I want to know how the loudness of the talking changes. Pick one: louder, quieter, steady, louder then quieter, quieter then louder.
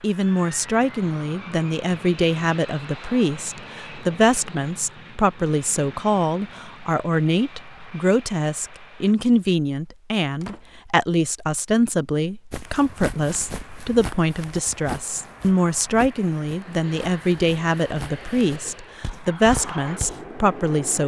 steady.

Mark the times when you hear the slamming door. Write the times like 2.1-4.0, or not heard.
10.4-10.8.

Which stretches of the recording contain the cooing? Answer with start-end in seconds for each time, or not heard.
not heard.